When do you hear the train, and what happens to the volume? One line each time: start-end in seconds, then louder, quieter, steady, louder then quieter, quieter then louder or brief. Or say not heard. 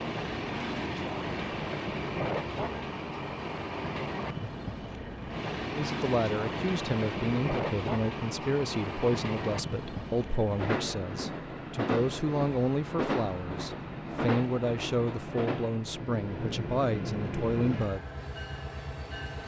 0.0-19.4 steady.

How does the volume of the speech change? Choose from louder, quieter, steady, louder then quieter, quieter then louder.
steady.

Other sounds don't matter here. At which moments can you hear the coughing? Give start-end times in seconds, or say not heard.
not heard.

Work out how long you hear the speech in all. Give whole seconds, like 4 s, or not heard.
12 s.